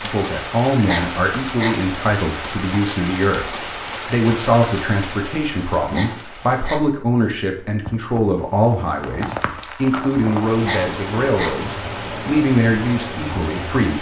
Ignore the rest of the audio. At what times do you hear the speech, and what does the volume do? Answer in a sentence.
You can hear the speech from 0.0 to 13.9 s, at a steady volume.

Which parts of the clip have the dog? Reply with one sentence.
You can hear the dog from 0.7 to 1.9 s, from 5.8 to 7.1 s and from 10.4 to 11.7 s.